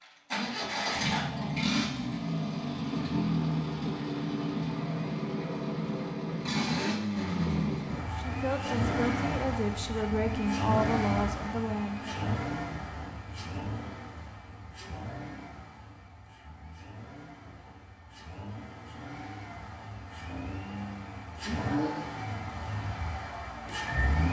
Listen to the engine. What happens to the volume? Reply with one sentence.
The loudness of the engine goes down, then up.